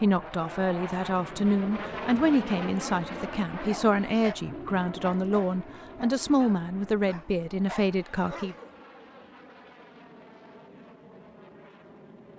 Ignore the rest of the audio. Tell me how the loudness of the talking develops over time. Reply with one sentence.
The loudness of the talking stays about the same.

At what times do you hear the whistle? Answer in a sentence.
You can't hear the whistle here.